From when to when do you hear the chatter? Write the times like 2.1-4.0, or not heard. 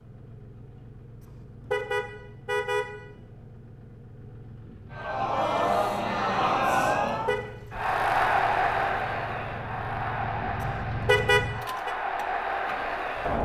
4.9-13.4.